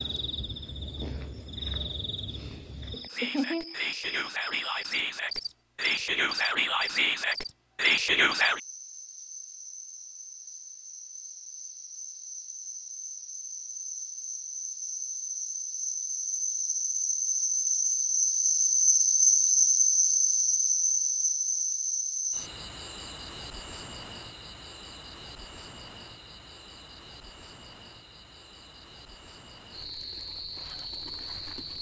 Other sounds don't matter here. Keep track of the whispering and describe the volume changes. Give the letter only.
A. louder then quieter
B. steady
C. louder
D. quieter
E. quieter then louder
C.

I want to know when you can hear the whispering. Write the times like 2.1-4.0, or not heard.
3.1-8.6.